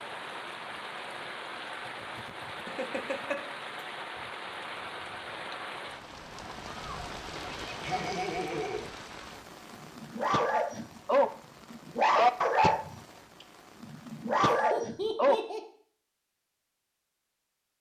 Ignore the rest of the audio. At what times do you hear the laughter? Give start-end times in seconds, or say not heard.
2.6-3.4, 7.3-8.9, 14.5-15.6.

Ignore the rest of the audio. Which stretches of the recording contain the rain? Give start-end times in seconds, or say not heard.
0.0-14.5.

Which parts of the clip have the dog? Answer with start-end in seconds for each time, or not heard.
9.7-13.0, 13.8-15.4.